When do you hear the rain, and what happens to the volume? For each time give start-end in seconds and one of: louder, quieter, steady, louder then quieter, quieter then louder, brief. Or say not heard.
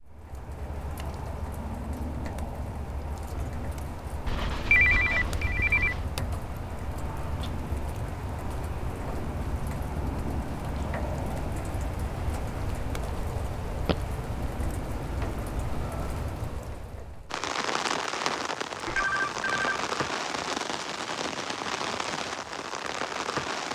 0.0-23.6 louder.